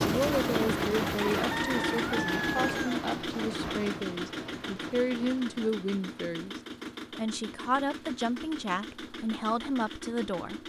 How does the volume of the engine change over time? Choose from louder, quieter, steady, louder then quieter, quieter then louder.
quieter.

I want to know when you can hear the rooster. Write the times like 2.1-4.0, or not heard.
1.1-3.0.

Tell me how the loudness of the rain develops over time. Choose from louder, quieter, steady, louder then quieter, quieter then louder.
quieter.